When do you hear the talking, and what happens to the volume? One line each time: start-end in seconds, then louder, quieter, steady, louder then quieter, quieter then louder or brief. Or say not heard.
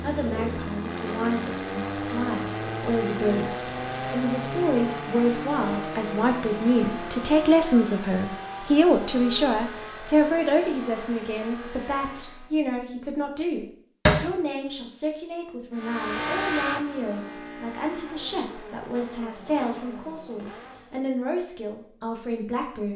0.0-22.9 louder then quieter.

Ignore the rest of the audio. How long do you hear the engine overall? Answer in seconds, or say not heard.
18 s.